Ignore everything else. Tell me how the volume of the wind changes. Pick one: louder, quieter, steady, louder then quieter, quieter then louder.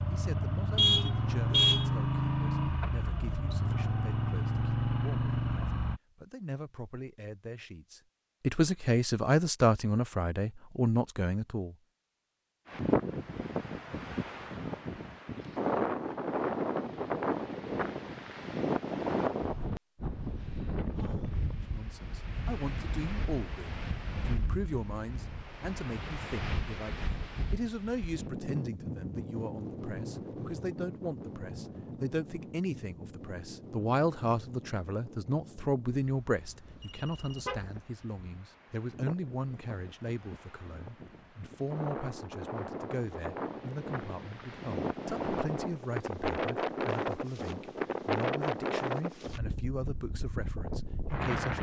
quieter then louder.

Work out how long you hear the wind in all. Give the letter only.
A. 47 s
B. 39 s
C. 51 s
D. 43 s
B.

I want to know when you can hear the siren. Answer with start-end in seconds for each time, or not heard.
not heard.